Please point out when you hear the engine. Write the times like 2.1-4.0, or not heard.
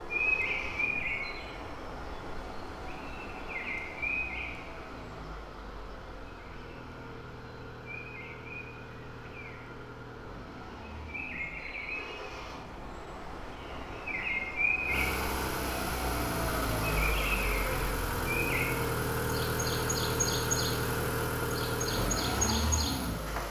0.0-23.4.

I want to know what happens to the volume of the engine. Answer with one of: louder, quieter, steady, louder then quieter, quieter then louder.
louder.